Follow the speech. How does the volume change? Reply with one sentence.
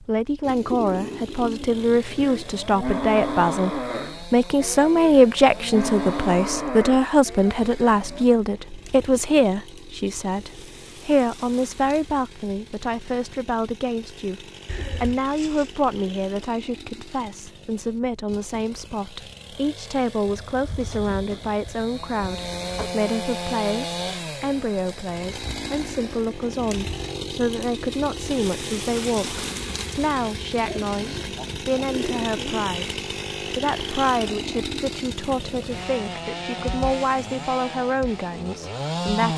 The loudness of the speech goes down.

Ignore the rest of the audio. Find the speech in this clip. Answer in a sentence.
The speech can be heard from 0.0 to 39.3 s.